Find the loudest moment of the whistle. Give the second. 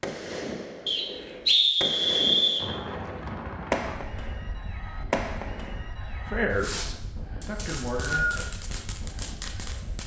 2 s.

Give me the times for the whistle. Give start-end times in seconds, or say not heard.
0.8-2.6, 7.5-8.2.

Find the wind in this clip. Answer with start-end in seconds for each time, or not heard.
2.5-10.0.